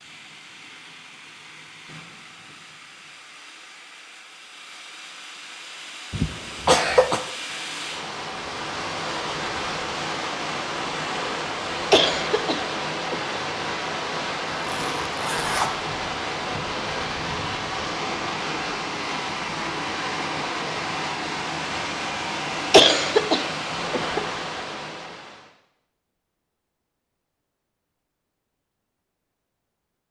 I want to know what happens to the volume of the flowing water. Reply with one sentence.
The loudness of the flowing water goes up.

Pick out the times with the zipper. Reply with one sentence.
The zipper can be heard from 14.5 to 15.8 s.